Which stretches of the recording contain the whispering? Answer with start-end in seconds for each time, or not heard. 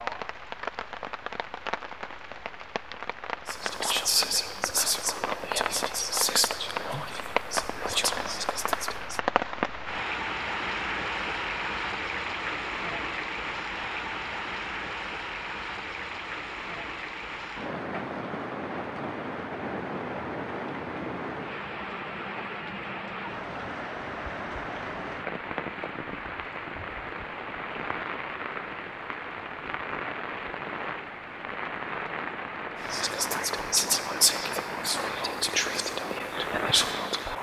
3.5-9.2, 32.8-37.3.